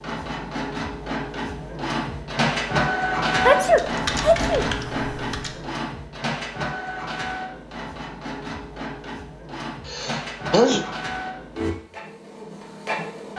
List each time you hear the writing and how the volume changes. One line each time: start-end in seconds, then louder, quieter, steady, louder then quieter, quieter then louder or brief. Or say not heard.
not heard.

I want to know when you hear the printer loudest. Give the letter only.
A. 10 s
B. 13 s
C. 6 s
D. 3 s
D.